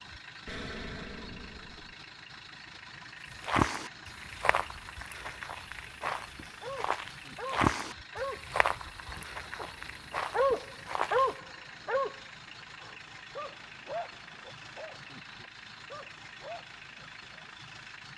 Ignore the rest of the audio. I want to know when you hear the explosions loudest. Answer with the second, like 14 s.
1 s.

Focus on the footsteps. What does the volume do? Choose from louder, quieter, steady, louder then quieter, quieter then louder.
louder then quieter.